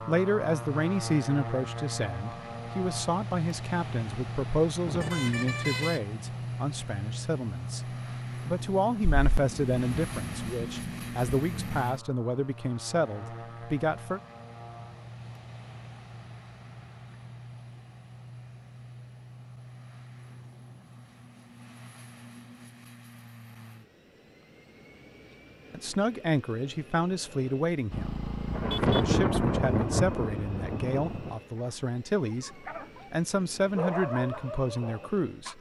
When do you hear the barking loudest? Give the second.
34 s.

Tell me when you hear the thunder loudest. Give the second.
29 s.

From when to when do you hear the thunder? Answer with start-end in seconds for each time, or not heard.
9.1-11.8, 28.5-31.4.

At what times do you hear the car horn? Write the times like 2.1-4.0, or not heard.
4.8-6.0, 27.9-29.1.